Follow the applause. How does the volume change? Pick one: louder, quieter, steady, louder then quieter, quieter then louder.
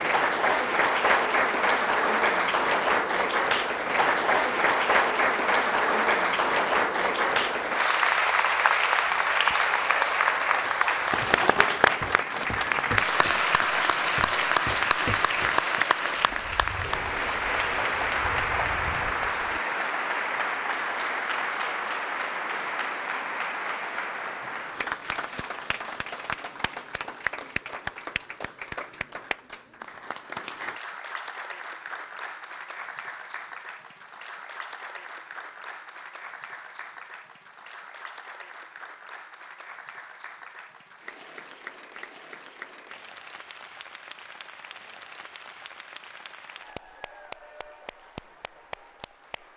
quieter.